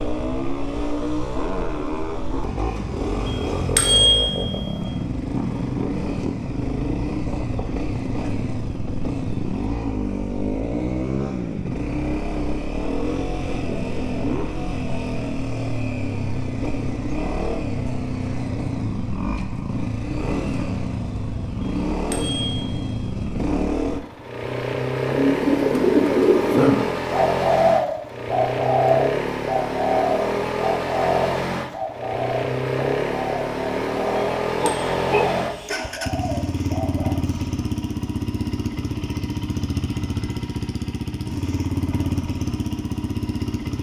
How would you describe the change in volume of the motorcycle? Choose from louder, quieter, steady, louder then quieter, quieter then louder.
steady.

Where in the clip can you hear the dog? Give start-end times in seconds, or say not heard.
34.6-35.8.